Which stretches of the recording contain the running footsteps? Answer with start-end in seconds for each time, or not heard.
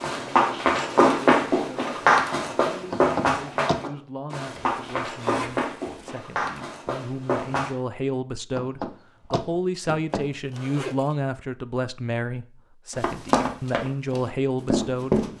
0.0-7.8, 12.9-15.3.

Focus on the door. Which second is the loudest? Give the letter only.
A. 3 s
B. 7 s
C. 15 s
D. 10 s
A.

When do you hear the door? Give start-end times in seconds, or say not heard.
2.9-3.8, 8.6-10.2.